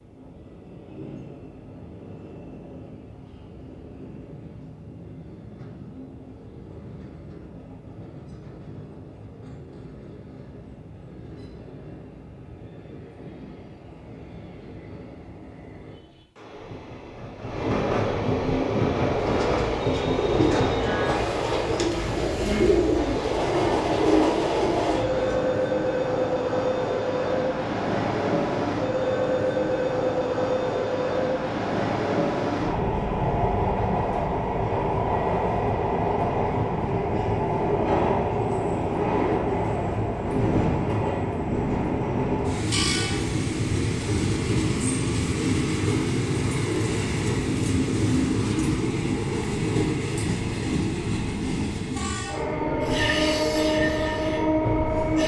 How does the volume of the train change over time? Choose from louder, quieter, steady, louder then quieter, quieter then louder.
louder.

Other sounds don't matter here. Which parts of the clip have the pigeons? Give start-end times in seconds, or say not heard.
18.4-25.4.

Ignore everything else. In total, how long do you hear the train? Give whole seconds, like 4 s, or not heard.
55 s.